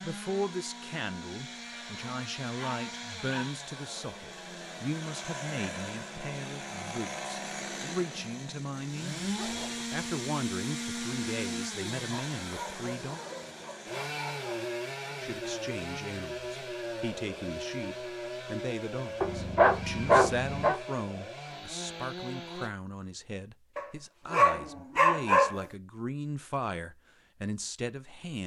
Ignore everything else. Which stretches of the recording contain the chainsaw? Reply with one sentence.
The chainsaw can be heard from 0.0 to 22.7 s.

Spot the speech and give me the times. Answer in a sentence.
The speech can be heard from 0.0 to 13.2 s and from 15.2 to 28.4 s.